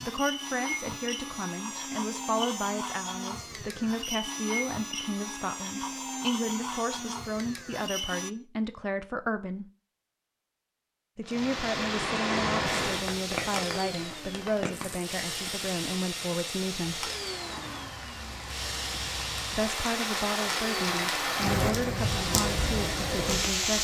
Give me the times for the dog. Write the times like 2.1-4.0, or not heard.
not heard.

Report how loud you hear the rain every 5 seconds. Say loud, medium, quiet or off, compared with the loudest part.
off, off, loud, medium, loud.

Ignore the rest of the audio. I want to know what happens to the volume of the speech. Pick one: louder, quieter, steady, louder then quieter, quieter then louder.
steady.